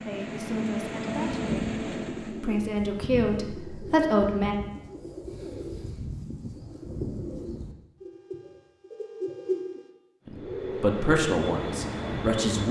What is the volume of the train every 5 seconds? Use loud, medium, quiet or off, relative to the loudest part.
loud, off, loud.